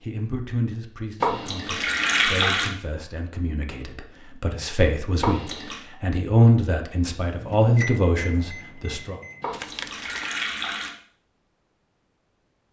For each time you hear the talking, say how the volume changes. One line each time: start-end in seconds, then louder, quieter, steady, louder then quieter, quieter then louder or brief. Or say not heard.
0.0-9.2 louder.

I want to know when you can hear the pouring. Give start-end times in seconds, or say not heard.
1.2-2.7, 5.2-5.8, 9.4-10.9.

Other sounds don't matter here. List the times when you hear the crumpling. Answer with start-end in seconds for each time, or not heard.
9.5-10.3.